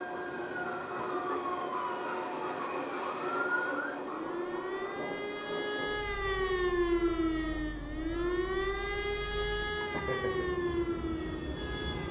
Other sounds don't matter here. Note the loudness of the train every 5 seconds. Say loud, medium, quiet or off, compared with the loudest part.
loud, medium, loud.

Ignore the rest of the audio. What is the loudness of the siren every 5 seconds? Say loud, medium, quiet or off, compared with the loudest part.
medium, loud, loud.